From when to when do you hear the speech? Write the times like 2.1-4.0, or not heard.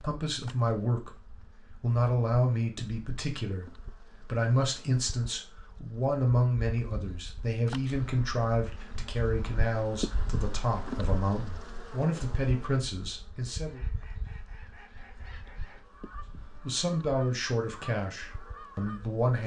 0.0-13.8, 16.6-19.4.